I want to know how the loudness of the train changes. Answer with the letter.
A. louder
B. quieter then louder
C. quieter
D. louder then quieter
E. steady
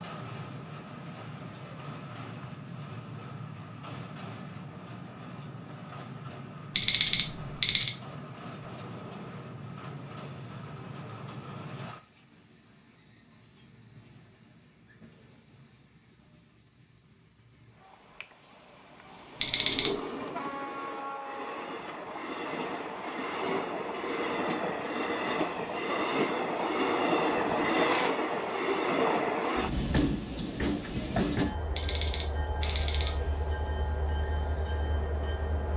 A.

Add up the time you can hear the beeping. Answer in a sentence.
You can hear the beeping for 3 seconds altogether.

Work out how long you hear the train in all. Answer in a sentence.
The train can be heard for 36 seconds in total.